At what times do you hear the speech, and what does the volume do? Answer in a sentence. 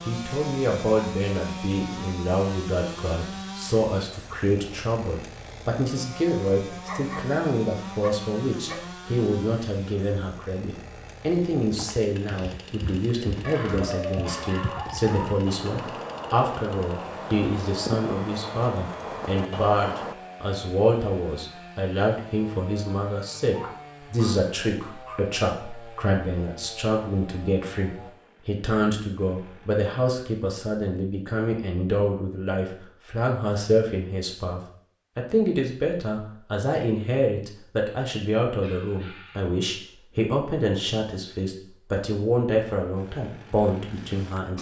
The speech can be heard from 0.1 to 44.5 s, at a steady volume.